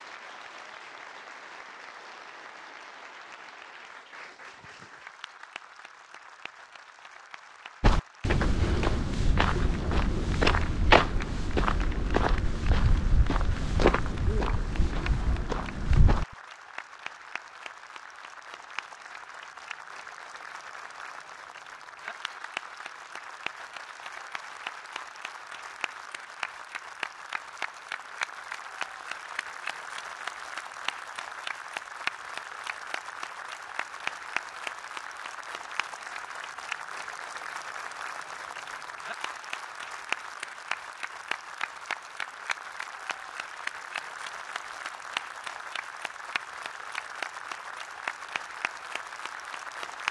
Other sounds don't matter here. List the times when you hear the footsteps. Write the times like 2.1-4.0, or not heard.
7.8-16.2.